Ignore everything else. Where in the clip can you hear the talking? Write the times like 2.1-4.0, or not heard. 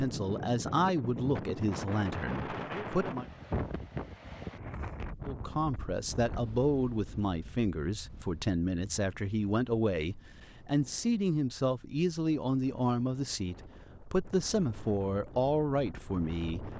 0.0-3.2, 5.2-16.6.